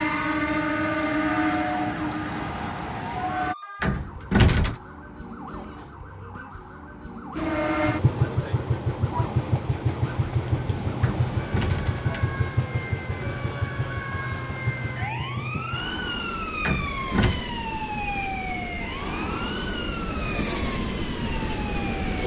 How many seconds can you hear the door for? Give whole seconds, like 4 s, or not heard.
3 s.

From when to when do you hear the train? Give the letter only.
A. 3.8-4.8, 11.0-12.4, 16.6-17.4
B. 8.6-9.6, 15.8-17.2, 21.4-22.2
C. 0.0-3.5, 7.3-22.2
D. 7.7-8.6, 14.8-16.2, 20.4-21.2
C.